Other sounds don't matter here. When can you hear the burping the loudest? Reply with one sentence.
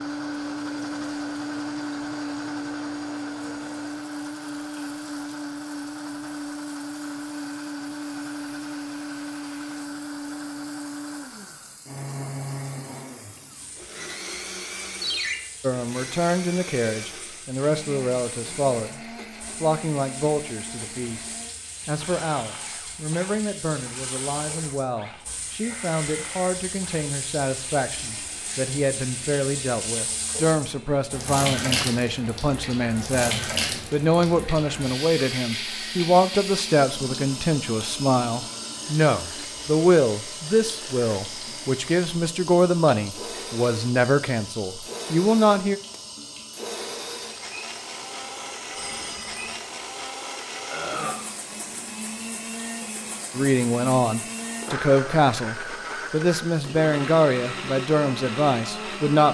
The volume of the burping peaks at 51 seconds.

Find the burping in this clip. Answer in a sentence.
You can hear the burping from 25.6 to 26.6 s and from 50.7 to 51.2 s.